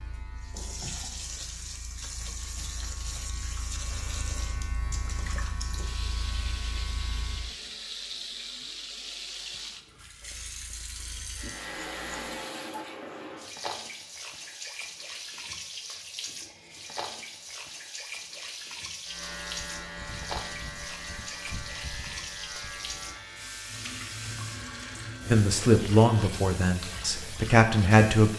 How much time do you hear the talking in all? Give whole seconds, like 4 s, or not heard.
3 s.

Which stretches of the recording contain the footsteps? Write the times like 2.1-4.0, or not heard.
not heard.